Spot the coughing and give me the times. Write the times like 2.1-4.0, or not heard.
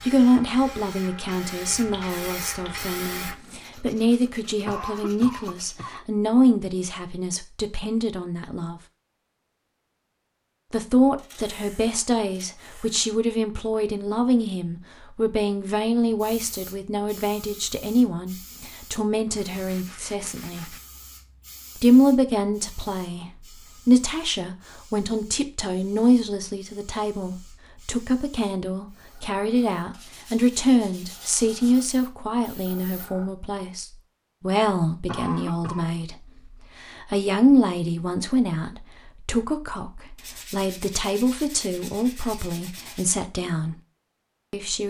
4.7-6.0, 35.0-35.9.